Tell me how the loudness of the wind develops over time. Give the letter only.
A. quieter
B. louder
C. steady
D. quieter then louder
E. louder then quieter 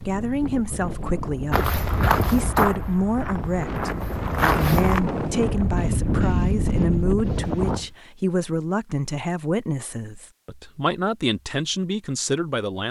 B.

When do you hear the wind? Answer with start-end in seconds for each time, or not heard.
0.0-7.9.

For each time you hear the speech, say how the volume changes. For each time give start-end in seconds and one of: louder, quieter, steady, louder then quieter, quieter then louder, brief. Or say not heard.
0.1-12.8 steady.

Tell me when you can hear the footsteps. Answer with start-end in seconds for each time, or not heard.
1.5-5.0.